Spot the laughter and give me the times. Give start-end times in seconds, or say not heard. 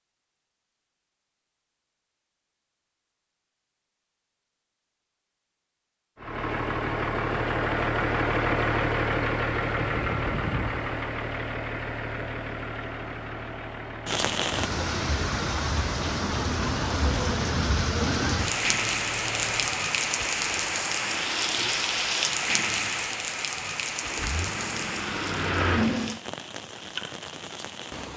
not heard.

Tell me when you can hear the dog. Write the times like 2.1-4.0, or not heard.
not heard.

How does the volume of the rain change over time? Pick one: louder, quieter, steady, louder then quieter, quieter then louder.
quieter.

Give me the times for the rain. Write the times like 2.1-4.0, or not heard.
14.1-28.1.